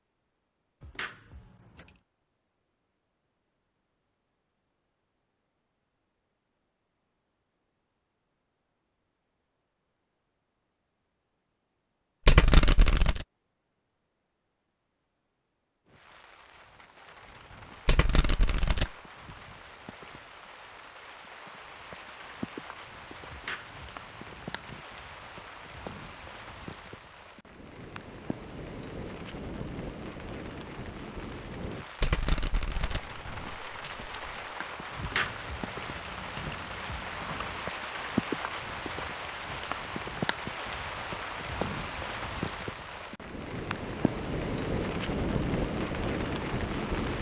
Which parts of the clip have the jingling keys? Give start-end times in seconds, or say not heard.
0.8-2.0, 23.3-24.8, 35.0-37.7.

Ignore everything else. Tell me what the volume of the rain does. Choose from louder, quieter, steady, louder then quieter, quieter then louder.
louder.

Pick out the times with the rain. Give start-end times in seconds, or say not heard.
15.8-47.1.